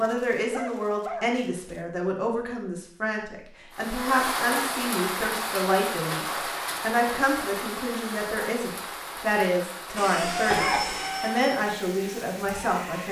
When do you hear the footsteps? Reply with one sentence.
You can't hear the footsteps here.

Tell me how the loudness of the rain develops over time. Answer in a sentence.
The volume of the rain goes down.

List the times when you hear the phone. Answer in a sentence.
The phone can't be heard in this clip.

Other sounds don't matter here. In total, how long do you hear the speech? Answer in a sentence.
The speech can be heard for 13 seconds in total.